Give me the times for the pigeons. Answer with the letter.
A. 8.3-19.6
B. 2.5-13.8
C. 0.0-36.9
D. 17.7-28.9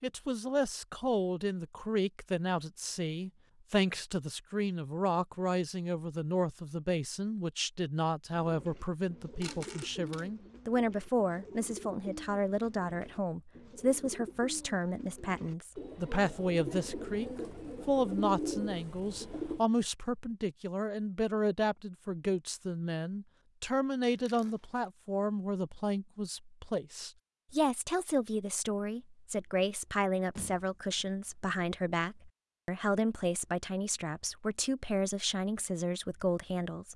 A.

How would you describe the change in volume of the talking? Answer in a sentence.
The volume of the talking stays about the same.